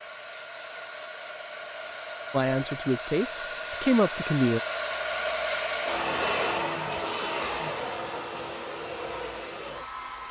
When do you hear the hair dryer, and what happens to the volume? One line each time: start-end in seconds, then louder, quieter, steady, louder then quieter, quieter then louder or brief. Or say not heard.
0.0-10.2 louder then quieter.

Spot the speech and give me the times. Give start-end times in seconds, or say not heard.
2.3-4.6.